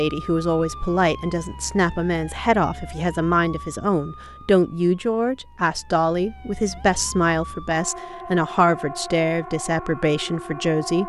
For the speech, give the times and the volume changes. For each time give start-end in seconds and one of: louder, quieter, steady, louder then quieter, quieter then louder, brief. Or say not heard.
0.0-11.0 steady.